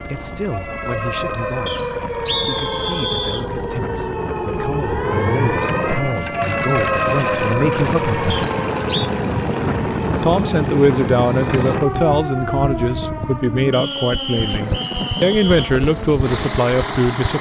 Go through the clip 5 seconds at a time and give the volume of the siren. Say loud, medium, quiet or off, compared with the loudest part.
loud, loud, medium, medium.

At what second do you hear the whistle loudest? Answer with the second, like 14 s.
2 s.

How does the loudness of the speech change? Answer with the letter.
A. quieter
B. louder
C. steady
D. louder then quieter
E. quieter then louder
B.